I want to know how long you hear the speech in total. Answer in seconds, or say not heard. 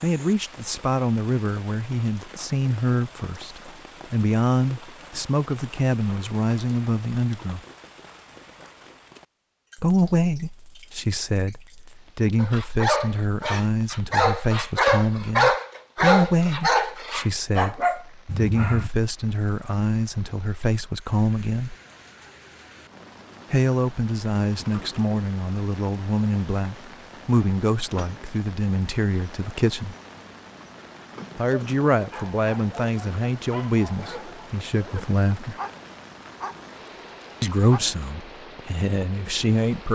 33 s.